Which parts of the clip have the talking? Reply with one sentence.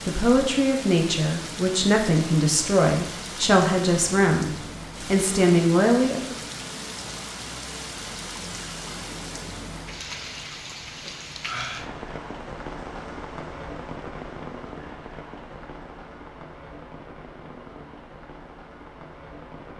The talking can be heard from 0.1 to 6.3 s.